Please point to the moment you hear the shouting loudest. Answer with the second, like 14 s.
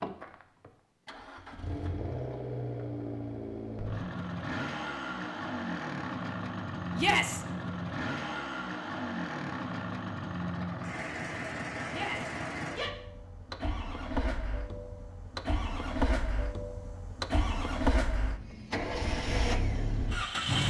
7 s.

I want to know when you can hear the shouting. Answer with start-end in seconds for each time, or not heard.
7.0-7.4, 11.8-12.9.